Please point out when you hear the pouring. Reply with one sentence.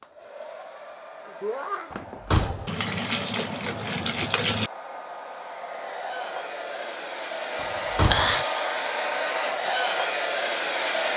You can hear the pouring from 2.6 to 4.7 s.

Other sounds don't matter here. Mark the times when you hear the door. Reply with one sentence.
The door can be heard from 1.9 to 2.8 s and from 7.6 to 8.4 s.